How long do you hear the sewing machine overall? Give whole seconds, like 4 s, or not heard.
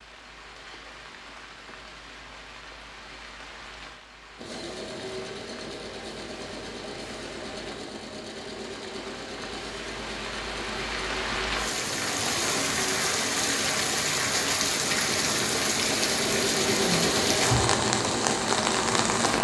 15 s.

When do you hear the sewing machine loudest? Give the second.
17 s.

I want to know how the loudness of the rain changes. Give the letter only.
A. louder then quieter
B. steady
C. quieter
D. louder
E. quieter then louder
D.